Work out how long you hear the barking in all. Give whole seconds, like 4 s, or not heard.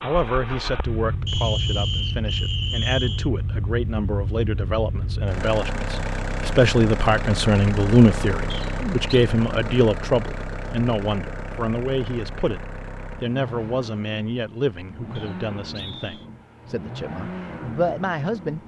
not heard.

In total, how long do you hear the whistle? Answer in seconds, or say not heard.
4 s.